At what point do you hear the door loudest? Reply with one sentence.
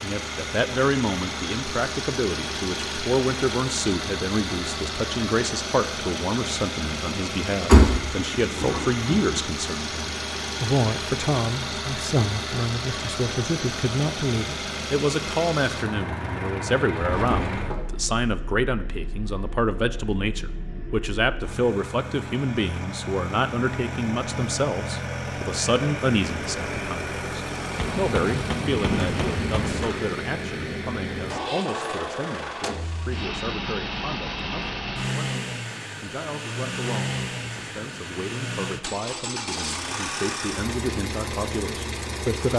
The volume of the door peaks at 8 seconds.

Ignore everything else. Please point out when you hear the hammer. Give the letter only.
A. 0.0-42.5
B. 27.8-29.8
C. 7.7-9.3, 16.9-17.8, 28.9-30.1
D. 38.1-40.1
B.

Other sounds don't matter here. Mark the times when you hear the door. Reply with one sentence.
You can hear the door from 7.7 to 9.3 s, from 16.9 to 17.8 s and from 28.9 to 30.1 s.